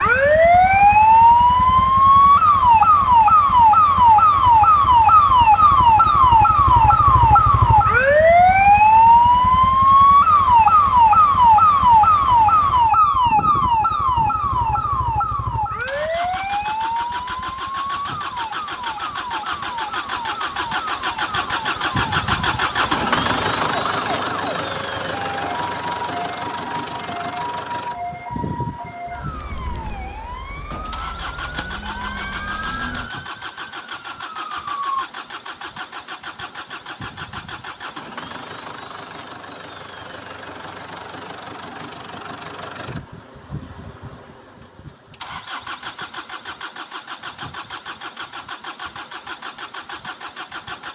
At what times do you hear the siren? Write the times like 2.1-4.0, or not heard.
0.0-35.0.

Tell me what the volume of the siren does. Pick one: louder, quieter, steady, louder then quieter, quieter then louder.
quieter.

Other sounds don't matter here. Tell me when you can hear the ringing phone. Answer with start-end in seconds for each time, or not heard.
not heard.